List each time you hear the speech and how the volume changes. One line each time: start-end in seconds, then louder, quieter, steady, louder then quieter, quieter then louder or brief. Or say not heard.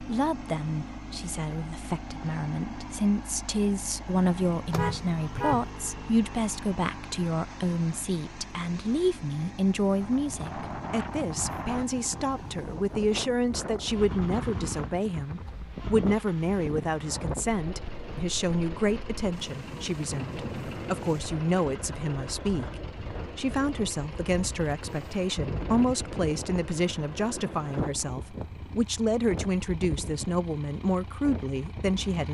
0.0-32.2 steady.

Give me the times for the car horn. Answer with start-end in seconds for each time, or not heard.
4.7-5.7.